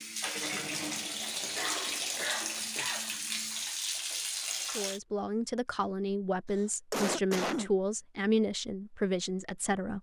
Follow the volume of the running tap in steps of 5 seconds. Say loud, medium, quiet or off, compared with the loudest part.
loud, off.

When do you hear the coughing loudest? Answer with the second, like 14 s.
7 s.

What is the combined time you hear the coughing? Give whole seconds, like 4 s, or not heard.
3 s.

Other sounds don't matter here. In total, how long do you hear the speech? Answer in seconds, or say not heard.
5 s.